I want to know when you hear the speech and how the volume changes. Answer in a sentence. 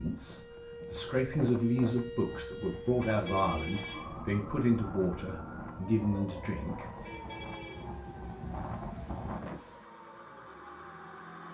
The speech can be heard from 0.0 to 6.9 s, at a steady volume.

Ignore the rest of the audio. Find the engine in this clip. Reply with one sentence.
You can hear the engine from 6.8 to 11.4 s.